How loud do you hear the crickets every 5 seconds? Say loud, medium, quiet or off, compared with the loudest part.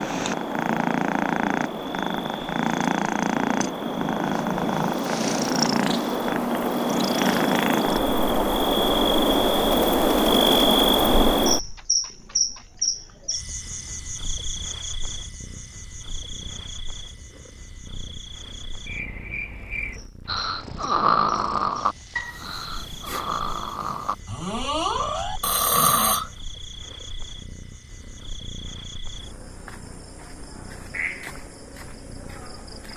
medium, loud, loud, quiet, quiet, quiet, quiet.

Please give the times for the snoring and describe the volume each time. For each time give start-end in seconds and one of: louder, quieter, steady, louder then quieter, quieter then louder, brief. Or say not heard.
20.2-26.3 quieter then louder.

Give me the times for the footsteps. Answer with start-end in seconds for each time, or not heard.
not heard.